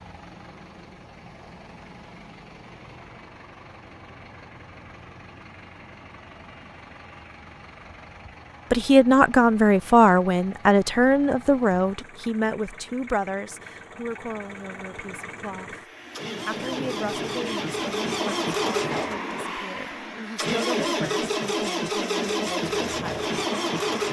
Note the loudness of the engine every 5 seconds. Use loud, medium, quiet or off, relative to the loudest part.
quiet, quiet, quiet, loud, loud.